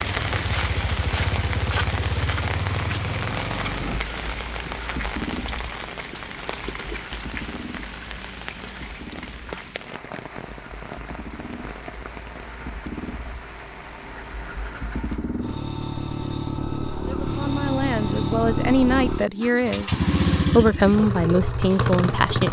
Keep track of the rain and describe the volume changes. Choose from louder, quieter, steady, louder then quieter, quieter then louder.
quieter.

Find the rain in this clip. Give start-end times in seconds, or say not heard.
0.0-15.2.